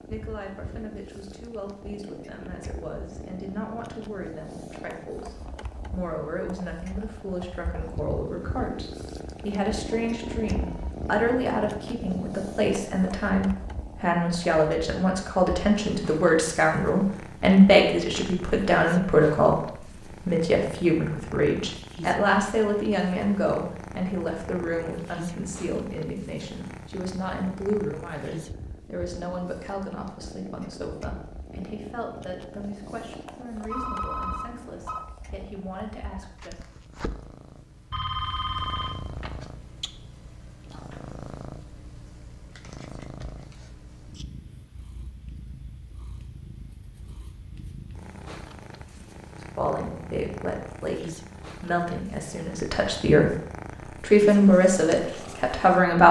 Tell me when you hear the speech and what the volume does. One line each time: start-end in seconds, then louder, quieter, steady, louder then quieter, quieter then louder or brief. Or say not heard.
0.0-36.6 louder then quieter
49.4-53.4 quieter then louder
54.0-56.0 brief.